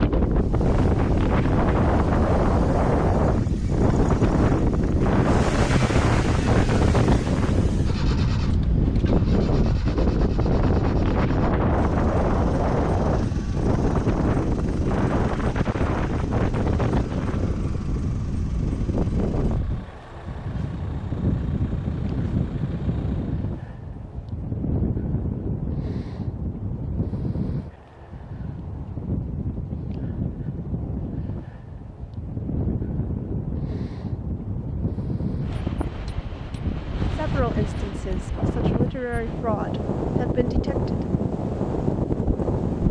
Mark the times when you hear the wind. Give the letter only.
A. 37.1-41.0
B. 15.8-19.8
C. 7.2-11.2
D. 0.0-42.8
D.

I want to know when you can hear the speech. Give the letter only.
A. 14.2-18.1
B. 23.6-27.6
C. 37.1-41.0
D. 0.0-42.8
C.